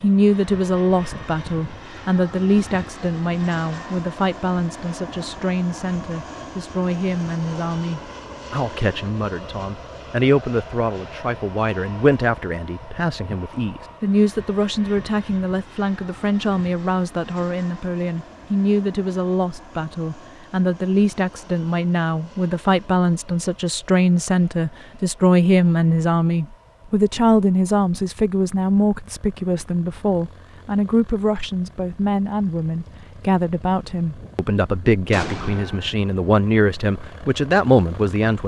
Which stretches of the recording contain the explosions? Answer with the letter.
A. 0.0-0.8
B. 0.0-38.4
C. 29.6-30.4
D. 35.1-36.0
D.